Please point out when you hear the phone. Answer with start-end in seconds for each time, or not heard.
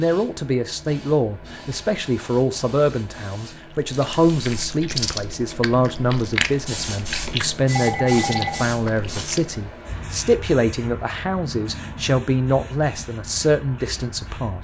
7.2-8.7.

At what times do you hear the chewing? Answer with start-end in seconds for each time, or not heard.
3.9-9.6.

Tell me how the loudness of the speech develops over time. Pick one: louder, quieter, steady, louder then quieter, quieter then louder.
steady.